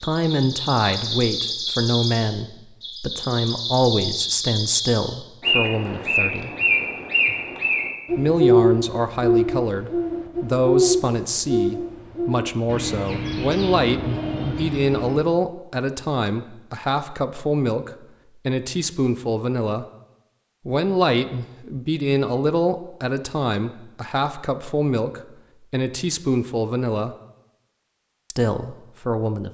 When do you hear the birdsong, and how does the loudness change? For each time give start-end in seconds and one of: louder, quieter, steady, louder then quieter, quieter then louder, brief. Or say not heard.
0.0-15.2 louder then quieter.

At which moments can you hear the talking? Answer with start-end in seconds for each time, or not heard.
0.0-6.5, 8.2-19.9, 20.6-27.1, 28.3-29.4.